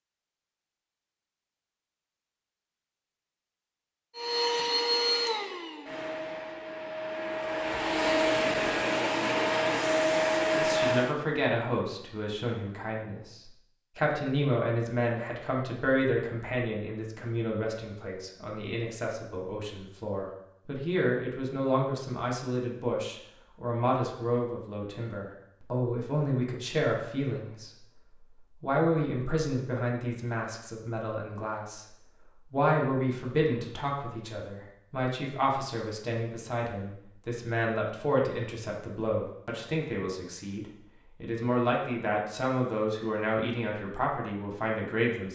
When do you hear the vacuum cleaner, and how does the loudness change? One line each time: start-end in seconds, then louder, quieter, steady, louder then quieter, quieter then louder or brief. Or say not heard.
4.2-11.2 quieter then louder.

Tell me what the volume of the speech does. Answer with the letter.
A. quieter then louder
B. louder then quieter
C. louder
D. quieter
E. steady
E.